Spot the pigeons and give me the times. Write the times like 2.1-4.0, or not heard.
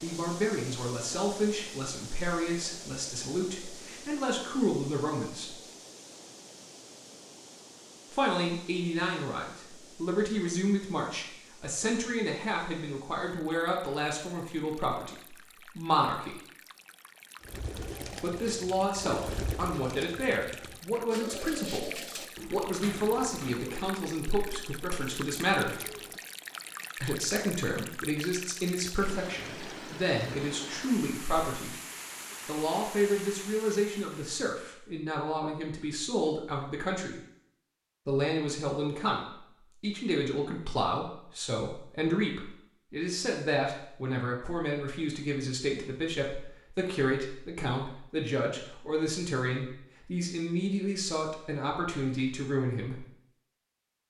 17.4-26.2.